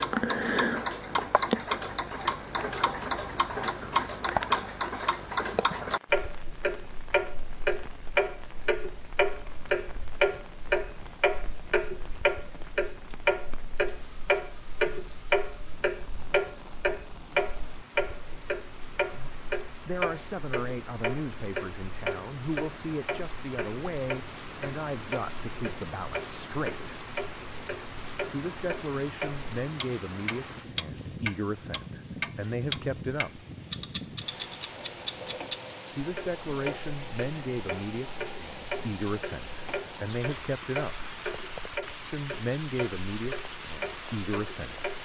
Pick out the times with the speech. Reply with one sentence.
You can hear the speech from 19.1 to 26.9 s, from 28.2 to 33.5 s, from 35.9 to 41.0 s and from 42.0 to 44.9 s.